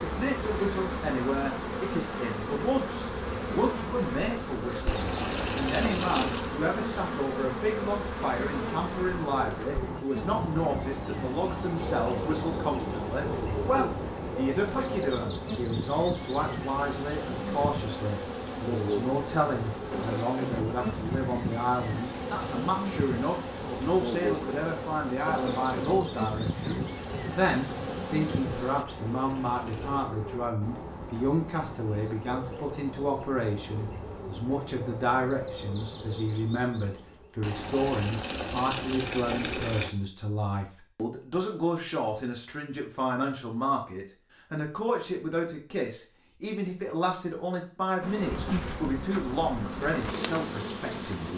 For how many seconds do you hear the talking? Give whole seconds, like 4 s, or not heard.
51 s.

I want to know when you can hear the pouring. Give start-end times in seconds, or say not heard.
4.8-6.5, 28.9-30.1, 37.4-39.9.